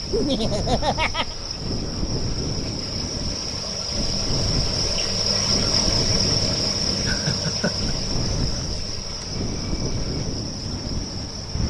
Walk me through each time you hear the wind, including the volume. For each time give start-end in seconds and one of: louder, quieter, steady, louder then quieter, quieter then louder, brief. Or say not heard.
0.0-11.6 steady.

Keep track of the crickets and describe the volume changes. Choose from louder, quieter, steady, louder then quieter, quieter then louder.
louder then quieter.